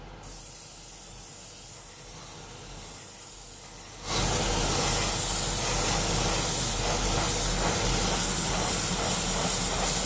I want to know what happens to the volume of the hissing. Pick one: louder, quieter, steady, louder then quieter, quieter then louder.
louder.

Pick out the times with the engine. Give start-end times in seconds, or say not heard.
7.5-10.0.